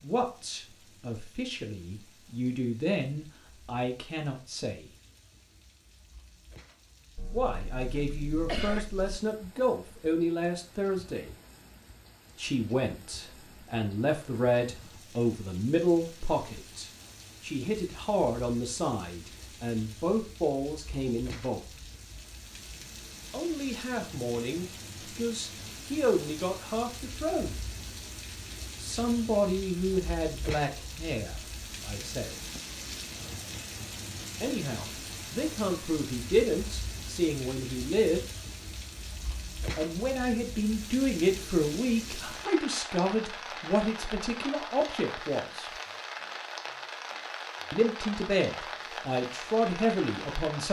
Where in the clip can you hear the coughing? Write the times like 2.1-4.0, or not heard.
7.2-9.2.